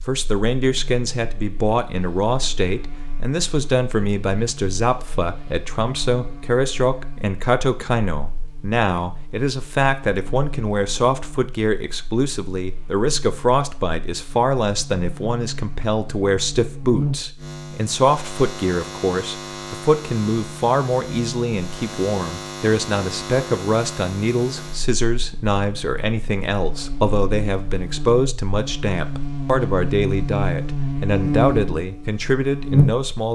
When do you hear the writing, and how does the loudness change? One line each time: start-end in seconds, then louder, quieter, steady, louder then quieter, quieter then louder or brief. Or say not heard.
not heard.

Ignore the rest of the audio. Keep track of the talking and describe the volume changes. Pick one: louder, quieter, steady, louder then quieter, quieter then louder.
steady.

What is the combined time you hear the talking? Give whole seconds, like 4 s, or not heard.
33 s.